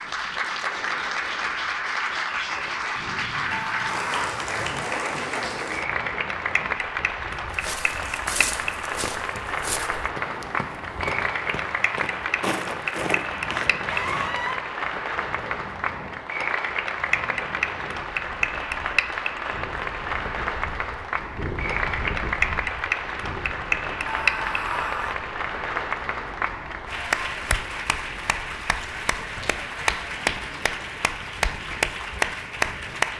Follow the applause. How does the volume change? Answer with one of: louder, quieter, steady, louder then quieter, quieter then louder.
steady.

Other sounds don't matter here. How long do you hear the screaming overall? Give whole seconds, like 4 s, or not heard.
3 s.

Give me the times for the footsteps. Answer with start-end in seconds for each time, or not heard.
7.5-14.6.